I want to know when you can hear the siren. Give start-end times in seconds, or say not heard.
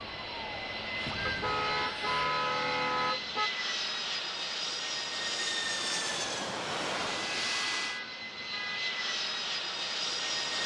0.0-2.2.